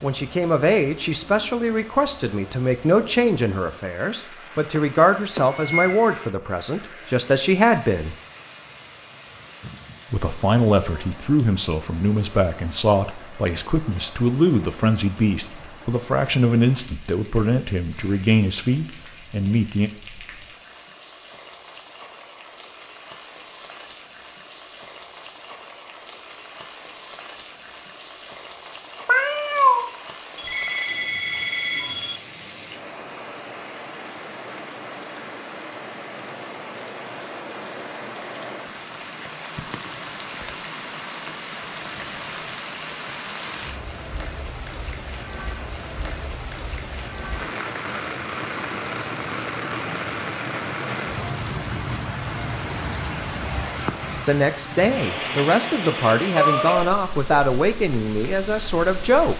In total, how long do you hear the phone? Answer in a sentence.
You can hear the phone for 2 seconds altogether.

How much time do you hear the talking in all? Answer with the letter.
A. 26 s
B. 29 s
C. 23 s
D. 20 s
C.